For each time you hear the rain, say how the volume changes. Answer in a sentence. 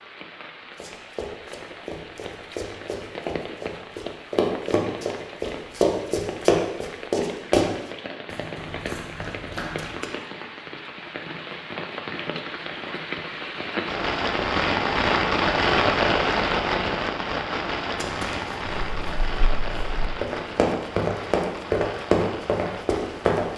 The rain can be heard from 0.0 to 23.5 s, getting louder then quieter.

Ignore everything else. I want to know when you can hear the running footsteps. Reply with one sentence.
The running footsteps can be heard from 0.8 to 10.2 s and from 17.9 to 23.5 s.